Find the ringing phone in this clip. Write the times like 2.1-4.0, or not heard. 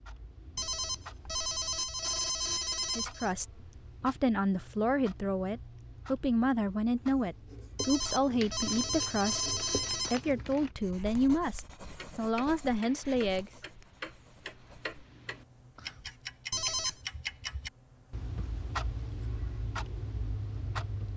0.6-3.4, 7.8-10.2, 16.5-17.0.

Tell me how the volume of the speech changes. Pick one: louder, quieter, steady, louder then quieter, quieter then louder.
steady.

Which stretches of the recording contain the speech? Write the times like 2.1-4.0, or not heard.
3.0-13.5.